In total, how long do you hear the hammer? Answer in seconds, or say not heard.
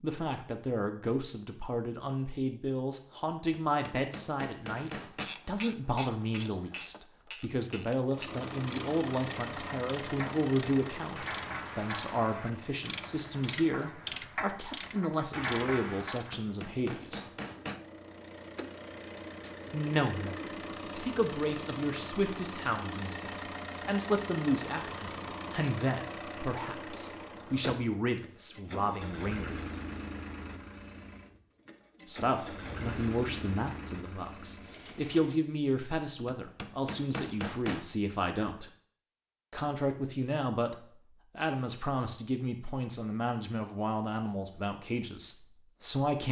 5 s.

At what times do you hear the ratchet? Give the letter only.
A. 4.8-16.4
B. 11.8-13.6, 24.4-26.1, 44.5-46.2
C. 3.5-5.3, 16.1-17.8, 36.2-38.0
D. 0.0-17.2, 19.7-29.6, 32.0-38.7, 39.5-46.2
A.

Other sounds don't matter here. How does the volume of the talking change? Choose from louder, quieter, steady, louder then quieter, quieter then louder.
steady.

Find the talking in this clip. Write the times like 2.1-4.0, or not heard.
0.0-17.2, 19.7-29.6, 32.0-38.7, 39.5-46.2.